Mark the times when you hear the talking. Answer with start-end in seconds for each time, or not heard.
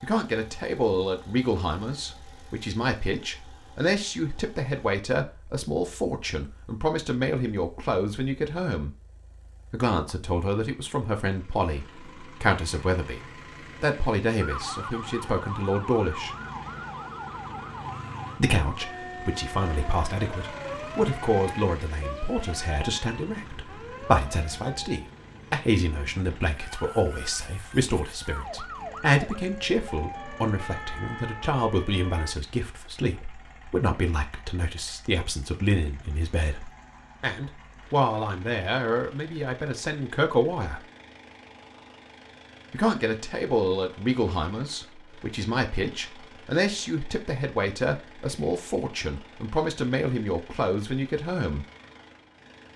0.0-8.9, 9.7-13.2, 13.8-16.3, 18.4-40.8, 42.7-51.6.